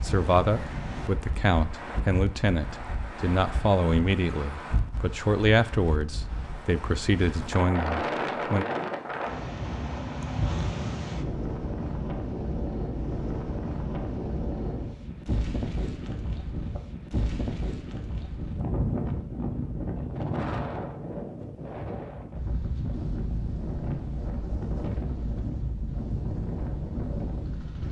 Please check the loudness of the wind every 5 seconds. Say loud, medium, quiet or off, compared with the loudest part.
medium, loud, loud, loud, loud, loud.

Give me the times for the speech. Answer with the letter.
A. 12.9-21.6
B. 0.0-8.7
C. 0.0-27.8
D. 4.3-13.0
B.